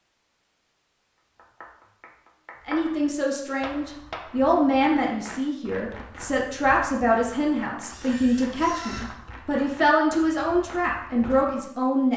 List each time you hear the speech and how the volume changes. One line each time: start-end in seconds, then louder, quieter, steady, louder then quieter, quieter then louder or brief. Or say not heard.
2.6-12.1 steady.